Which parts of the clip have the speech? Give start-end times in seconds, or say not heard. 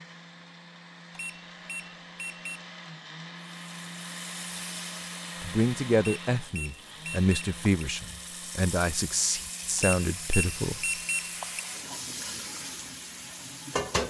5.4-10.8.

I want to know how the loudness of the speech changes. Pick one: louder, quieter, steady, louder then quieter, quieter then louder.
steady.